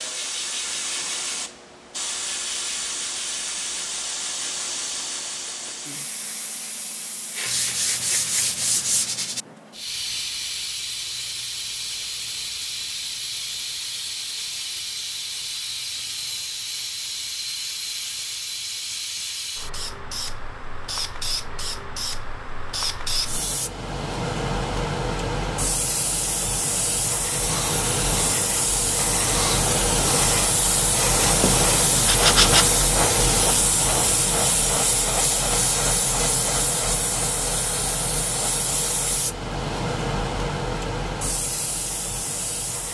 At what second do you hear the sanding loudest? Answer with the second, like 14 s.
32 s.